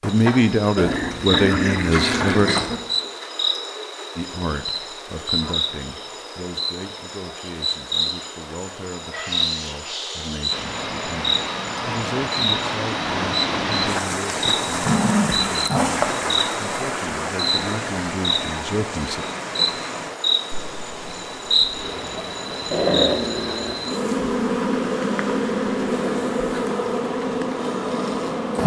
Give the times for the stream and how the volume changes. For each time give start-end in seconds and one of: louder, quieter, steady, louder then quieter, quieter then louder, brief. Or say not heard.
10.5-28.6 quieter.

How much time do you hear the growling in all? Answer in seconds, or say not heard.
4 s.